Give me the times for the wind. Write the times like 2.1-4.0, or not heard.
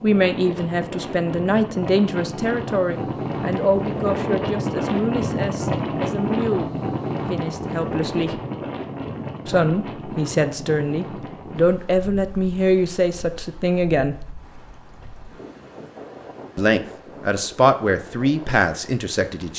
0.0-19.5.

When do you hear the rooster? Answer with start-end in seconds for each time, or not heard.
not heard.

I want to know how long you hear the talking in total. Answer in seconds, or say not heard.
16 s.